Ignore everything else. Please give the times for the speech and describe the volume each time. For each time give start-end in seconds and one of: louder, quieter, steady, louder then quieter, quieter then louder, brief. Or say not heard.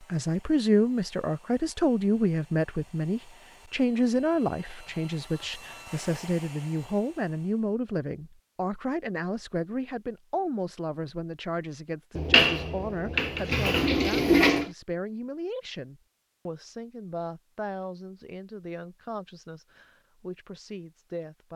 0.1-21.5 quieter.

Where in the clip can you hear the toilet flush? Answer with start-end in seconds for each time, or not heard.
12.2-14.7.